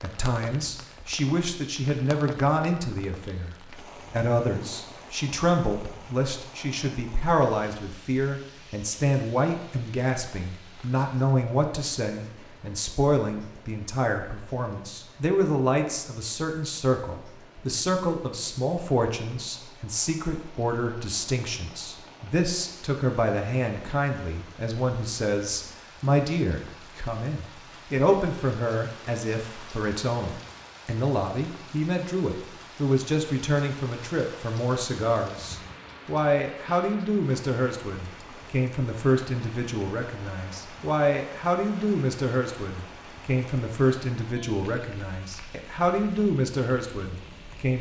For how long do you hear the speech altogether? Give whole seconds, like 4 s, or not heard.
48 s.